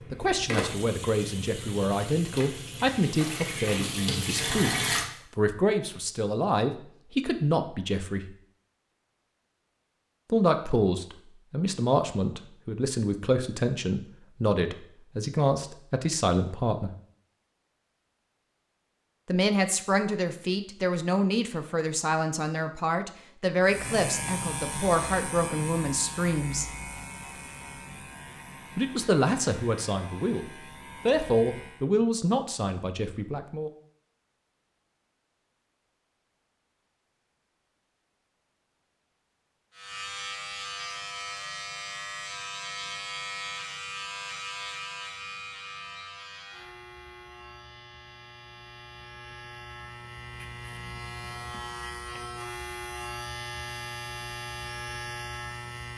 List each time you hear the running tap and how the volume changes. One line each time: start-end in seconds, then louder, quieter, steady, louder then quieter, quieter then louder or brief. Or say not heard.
0.0-5.0 quieter then louder.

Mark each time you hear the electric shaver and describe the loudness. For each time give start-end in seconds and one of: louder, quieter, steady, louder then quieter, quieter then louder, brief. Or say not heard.
23.6-31.9 quieter
39.7-55.9 quieter then louder.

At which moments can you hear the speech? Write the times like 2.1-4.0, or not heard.
0.1-4.8, 5.3-8.3, 10.3-16.9, 19.2-26.6, 28.8-33.7.